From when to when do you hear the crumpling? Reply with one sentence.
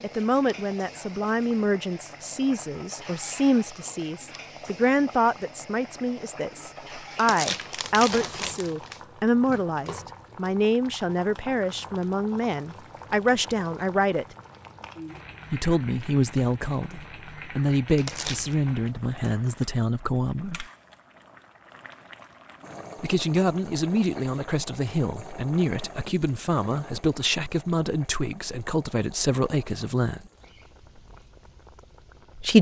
The crumpling can be heard from 7.2 to 9.0 s and from 17.9 to 18.6 s.